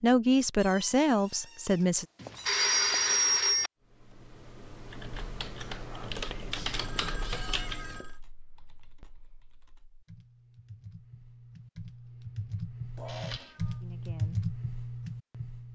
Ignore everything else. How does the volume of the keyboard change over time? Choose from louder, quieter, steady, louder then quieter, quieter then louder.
quieter then louder.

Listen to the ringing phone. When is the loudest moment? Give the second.
3 s.